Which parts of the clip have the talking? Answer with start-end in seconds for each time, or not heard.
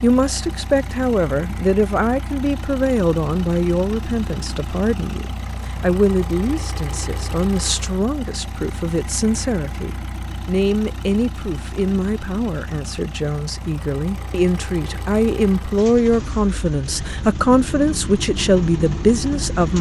0.0-19.7.